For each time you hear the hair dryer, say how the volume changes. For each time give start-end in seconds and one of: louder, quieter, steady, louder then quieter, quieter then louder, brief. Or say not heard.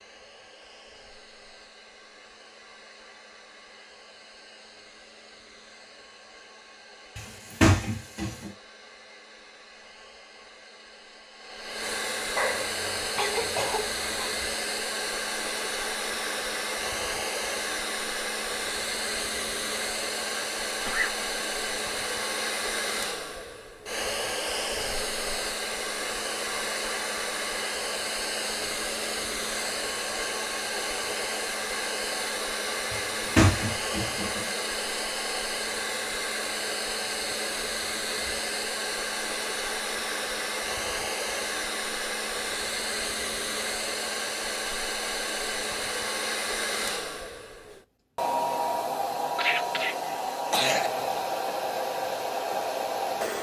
0.0-53.3 louder.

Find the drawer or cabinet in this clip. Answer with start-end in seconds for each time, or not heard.
7.2-8.5, 32.9-34.5.